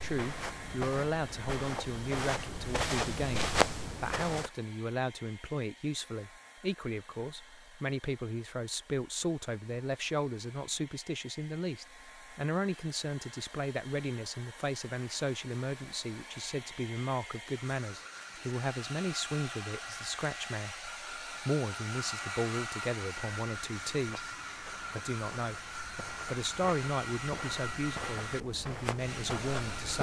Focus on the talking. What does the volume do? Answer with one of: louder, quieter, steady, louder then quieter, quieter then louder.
steady.